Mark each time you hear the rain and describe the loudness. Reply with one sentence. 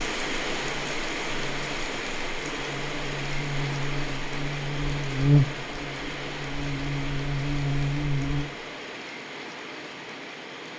The rain can be heard from 0.0 to 10.7 s, getting quieter.